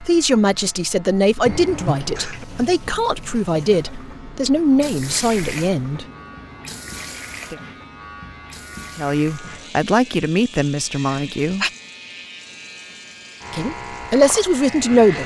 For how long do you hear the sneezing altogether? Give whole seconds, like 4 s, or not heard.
2 s.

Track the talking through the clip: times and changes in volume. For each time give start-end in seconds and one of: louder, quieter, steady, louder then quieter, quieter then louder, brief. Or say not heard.
0.0-6.0 steady
8.9-11.7 brief
13.5-15.2 brief.